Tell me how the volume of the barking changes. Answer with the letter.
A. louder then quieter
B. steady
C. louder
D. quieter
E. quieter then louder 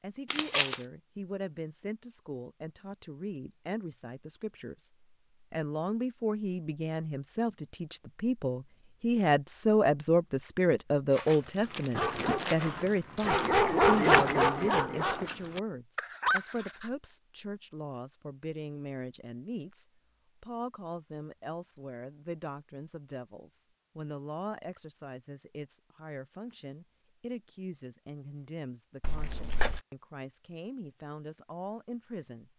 A.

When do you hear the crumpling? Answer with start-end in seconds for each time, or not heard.
0.3-0.8, 11.1-12.7, 29.0-29.8.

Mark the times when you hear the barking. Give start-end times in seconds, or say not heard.
11.6-16.9.